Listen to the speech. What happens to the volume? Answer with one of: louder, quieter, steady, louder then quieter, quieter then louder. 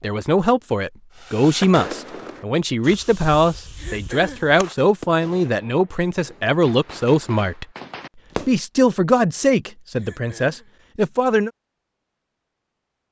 steady.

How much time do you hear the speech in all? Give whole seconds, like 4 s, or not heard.
11 s.